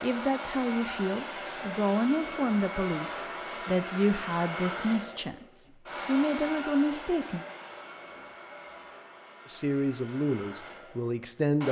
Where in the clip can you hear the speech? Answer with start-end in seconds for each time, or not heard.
0.0-7.5, 9.5-11.6.